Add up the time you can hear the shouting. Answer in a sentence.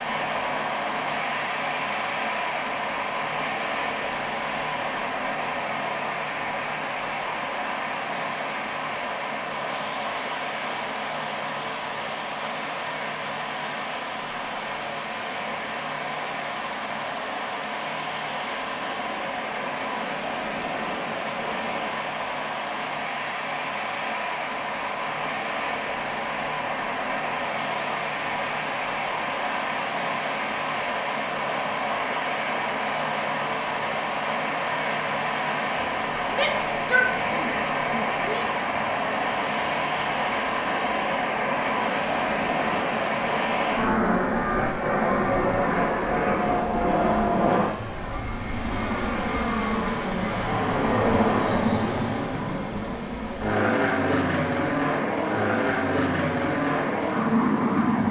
The shouting can be heard for 2 seconds in total.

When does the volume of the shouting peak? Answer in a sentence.
The volume of the shouting peaks at 37 seconds.